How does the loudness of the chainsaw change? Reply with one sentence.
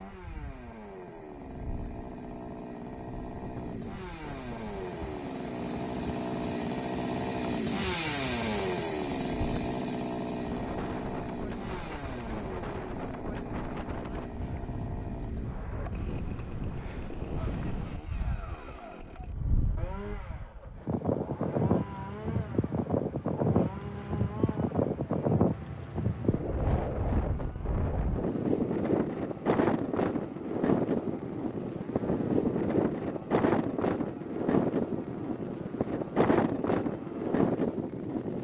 The loudness of the chainsaw goes down.